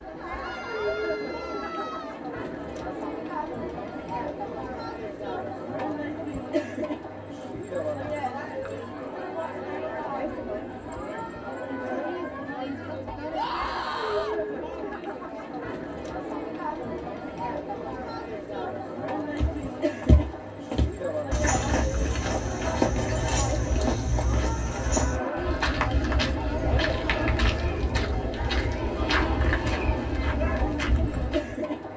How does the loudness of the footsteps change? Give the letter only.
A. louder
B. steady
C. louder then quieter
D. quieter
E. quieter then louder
B.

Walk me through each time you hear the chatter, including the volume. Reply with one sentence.
You can hear the chatter from 0.0 to 31.9 s, at a steady volume.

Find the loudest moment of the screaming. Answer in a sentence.
The loudest moment of the screaming is at 14 seconds.